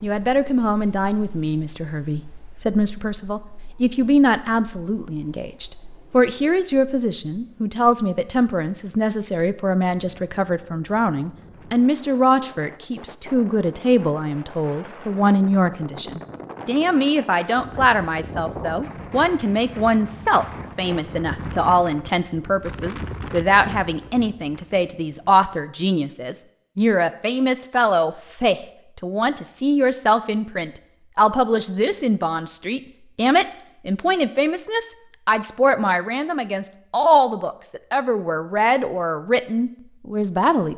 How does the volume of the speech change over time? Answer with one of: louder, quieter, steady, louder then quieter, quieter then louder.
steady.